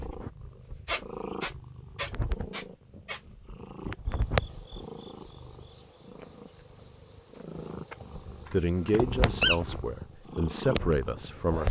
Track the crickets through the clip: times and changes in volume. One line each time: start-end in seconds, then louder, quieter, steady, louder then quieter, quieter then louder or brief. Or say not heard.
4.0-11.6 quieter.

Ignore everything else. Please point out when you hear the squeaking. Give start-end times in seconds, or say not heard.
0.8-3.2, 8.4-9.8.